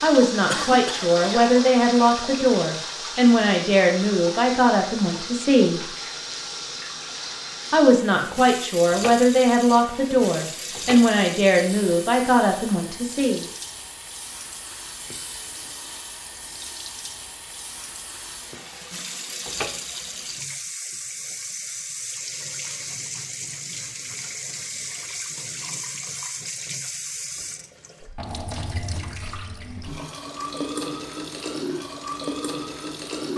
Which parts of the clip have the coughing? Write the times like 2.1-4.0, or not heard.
0.5-1.4.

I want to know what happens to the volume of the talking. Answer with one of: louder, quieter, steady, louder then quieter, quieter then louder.
steady.